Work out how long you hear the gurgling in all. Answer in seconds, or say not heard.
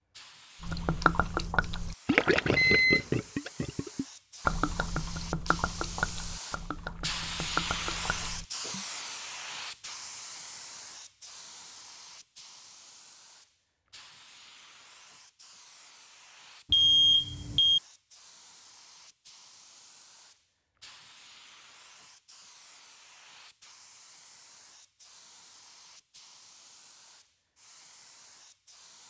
8 s.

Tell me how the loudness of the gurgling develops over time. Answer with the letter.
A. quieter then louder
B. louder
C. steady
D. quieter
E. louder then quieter
D.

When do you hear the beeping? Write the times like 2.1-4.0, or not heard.
2.1-3.0, 16.7-17.8.